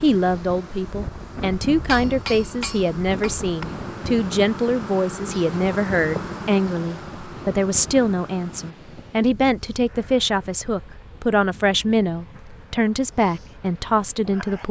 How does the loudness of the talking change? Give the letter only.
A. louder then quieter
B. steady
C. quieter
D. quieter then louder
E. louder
B.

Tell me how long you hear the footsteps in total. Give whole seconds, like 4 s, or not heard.
not heard.